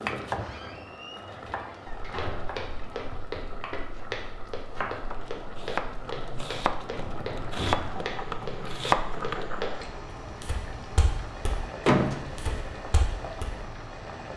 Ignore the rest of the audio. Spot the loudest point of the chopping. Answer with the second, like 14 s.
9 s.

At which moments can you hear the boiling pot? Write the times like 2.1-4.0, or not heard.
0.0-14.3.